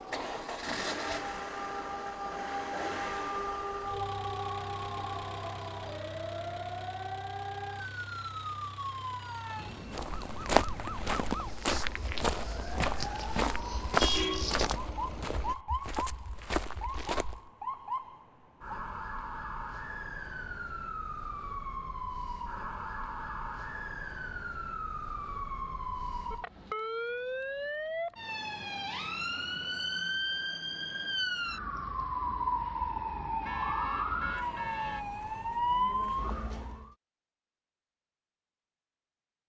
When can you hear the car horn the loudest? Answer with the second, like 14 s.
14 s.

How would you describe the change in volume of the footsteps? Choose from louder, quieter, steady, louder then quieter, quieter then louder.
quieter.